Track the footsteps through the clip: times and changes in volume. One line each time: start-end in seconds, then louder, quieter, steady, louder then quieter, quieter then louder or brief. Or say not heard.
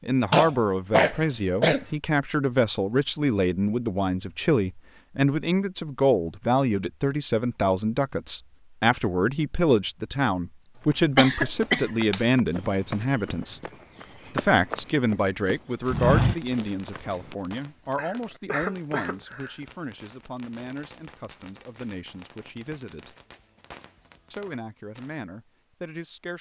10.8-17.4 louder.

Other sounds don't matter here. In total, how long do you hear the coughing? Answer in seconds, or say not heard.
5 s.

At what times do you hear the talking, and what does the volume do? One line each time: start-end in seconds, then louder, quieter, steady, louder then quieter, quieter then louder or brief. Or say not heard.
0.0-13.6 steady
14.3-23.1 quieter
24.3-26.3 brief.